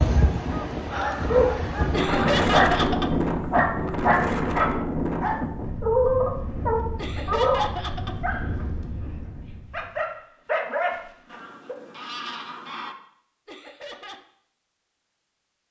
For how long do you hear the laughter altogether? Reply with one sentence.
You can hear the laughter for 3 seconds altogether.